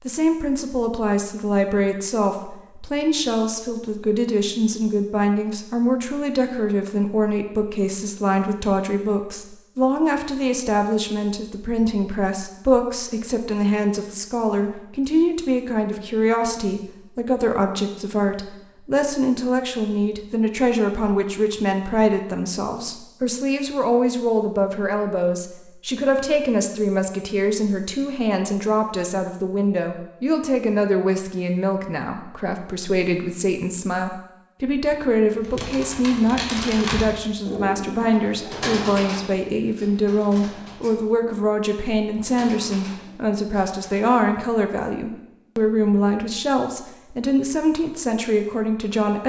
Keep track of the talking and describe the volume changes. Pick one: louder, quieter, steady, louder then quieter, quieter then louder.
steady.